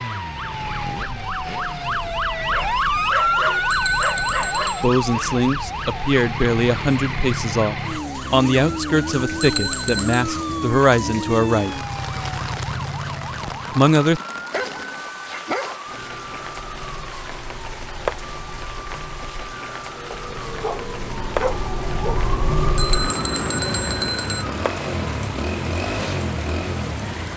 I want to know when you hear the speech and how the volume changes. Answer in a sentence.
The speech can be heard from 4.7 to 11.8 s, at a steady volume; and briefly from 13.7 to 14.2 s.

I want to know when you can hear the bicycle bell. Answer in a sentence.
You can hear the bicycle bell from 3.7 to 4.9 s, from 9.4 to 10.1 s and from 22.8 to 24.4 s.